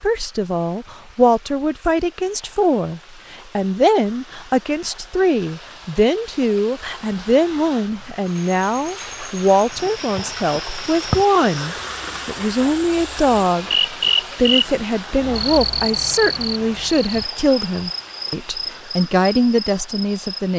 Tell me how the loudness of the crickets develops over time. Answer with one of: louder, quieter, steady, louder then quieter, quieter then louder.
louder then quieter.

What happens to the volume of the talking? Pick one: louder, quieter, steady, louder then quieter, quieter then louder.
steady.